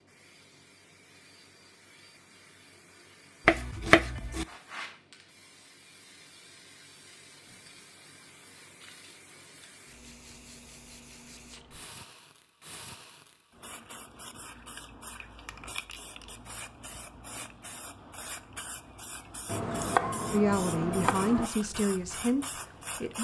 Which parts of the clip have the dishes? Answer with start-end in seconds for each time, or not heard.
not heard.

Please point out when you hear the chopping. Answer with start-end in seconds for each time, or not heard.
3.5-4.5, 19.4-21.5.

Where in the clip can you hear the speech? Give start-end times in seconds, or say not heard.
20.3-23.1.